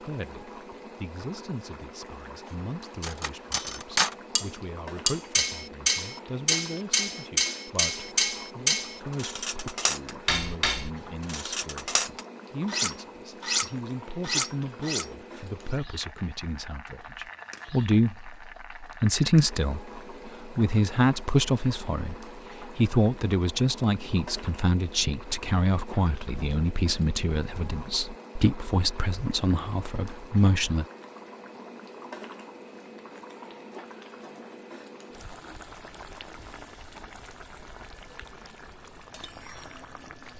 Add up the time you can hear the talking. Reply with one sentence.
The talking can be heard for 31 seconds in total.